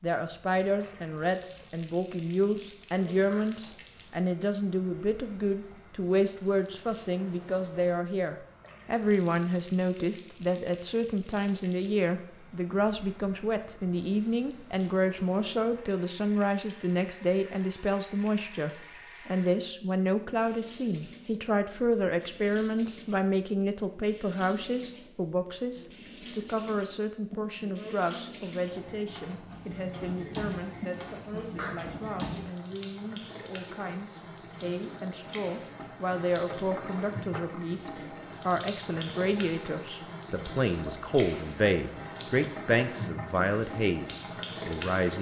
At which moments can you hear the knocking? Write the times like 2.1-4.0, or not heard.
36.5-37.5.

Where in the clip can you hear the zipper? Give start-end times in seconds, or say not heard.
not heard.